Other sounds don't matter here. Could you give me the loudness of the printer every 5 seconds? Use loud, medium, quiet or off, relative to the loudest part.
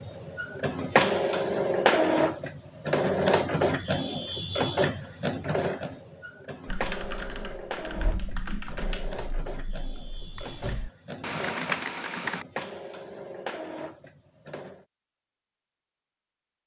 loud, medium, quiet, off.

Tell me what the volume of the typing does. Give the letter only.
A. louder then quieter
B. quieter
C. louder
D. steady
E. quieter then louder
E.